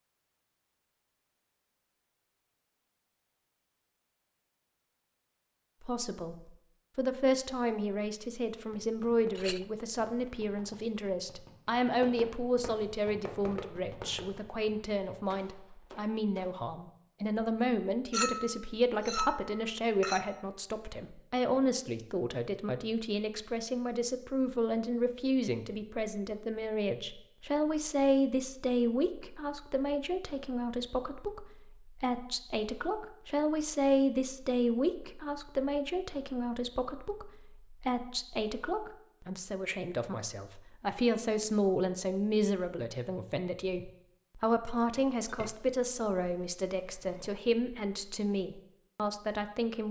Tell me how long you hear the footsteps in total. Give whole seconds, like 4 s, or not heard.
not heard.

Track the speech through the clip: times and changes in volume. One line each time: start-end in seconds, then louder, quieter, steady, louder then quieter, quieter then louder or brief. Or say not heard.
5.8-49.8 steady.